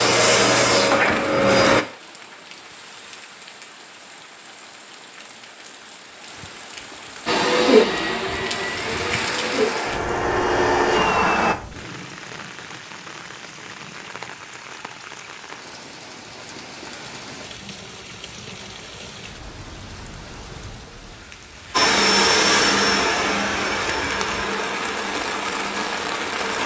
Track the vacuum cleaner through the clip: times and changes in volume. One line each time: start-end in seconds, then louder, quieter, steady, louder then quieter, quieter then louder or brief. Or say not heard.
0.0-1.9 brief
7.2-11.6 quieter then louder
21.7-26.6 quieter.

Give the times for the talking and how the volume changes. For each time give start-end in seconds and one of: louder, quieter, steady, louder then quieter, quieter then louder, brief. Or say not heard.
not heard.